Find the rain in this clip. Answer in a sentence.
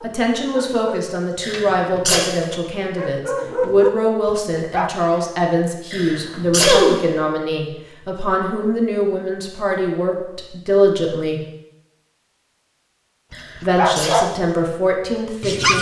You can't hear the rain here.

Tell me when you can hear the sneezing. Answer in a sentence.
The sneezing can be heard from 1.4 to 2.2 s, from 5.9 to 7.0 s and from 13.3 to 14.2 s.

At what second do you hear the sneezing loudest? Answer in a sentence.
The loudest moment of the sneezing is at 7 seconds.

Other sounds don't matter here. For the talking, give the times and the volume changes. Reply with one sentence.
You can hear the talking from 0.0 to 11.4 s, at a steady volume; and briefly from 13.6 to 15.7 s.